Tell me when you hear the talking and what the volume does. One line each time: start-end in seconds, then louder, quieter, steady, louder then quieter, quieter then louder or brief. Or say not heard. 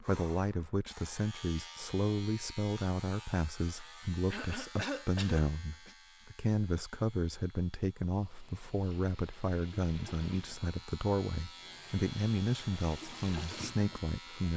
0.0-14.5 steady.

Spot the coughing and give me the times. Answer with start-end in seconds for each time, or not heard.
4.3-6.0.